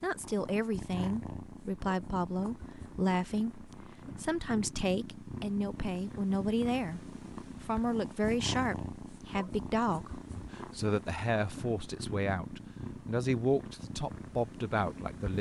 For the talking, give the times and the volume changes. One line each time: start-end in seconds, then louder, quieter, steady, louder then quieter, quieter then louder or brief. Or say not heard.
0.0-15.3 steady.